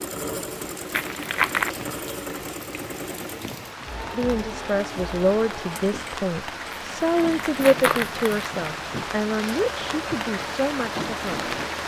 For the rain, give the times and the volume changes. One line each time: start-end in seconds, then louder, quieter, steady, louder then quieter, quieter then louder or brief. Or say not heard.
0.0-11.8 louder.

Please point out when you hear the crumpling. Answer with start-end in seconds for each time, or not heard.
0.9-1.7, 6.7-8.7.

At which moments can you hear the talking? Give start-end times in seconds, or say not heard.
4.1-11.6.